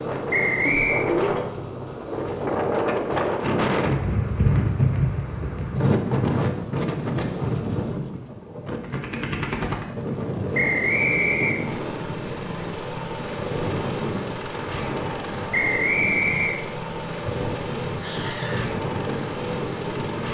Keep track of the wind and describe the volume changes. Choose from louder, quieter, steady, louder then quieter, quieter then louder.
quieter.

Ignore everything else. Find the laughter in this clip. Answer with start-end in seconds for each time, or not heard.
0.6-1.6, 17.6-18.6.